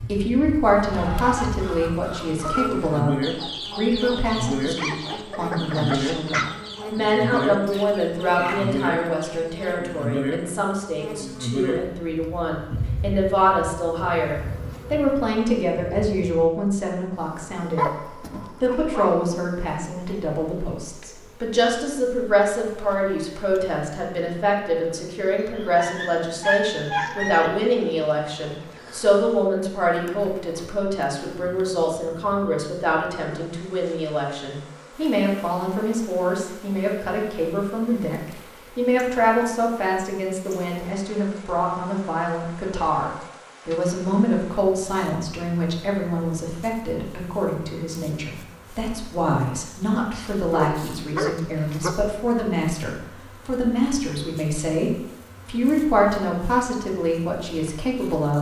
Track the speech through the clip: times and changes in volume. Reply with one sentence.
You can hear the speech from 0.1 to 58.3 s, at a steady volume.